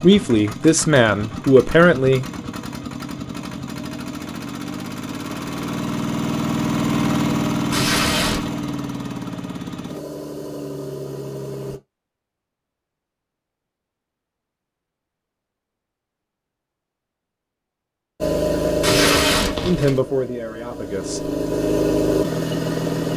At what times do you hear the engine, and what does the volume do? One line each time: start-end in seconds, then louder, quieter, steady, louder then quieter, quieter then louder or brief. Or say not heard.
0.0-11.8 louder then quieter
18.2-23.1 quieter then louder.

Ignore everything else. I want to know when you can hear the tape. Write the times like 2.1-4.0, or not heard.
7.7-8.5, 18.8-20.0.